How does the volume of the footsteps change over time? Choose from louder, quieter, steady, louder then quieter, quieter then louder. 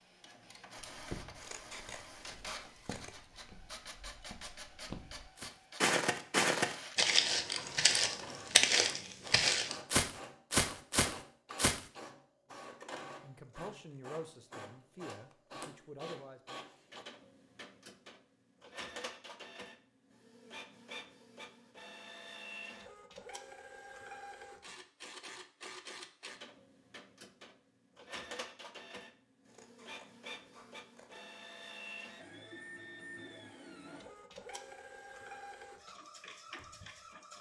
louder.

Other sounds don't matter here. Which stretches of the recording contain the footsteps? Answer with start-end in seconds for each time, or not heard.
0.9-11.8.